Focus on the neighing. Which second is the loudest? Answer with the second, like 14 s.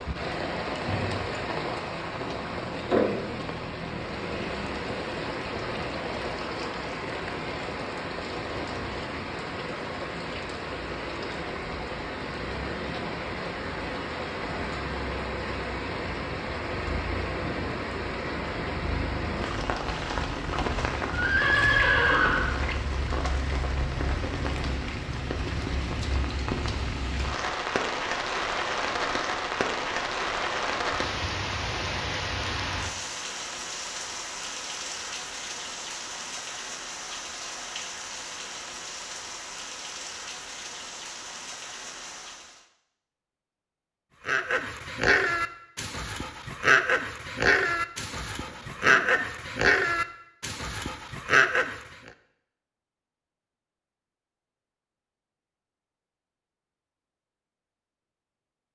22 s.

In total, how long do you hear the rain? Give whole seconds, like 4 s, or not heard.
43 s.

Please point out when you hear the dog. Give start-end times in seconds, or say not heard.
44.2-52.1.